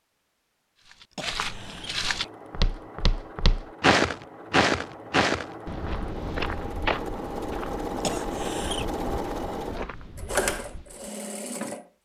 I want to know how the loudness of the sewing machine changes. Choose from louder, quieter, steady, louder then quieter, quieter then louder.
louder.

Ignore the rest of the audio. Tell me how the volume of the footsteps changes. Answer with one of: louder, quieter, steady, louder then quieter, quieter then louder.
louder then quieter.